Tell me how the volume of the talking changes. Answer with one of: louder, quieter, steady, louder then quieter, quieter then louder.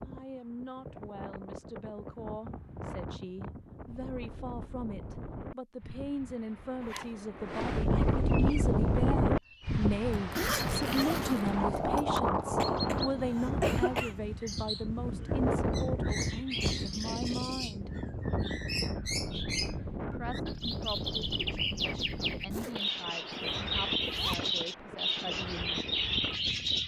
louder then quieter.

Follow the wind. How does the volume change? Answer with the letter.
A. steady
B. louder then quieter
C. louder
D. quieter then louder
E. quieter
B.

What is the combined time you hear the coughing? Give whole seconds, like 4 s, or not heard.
2 s.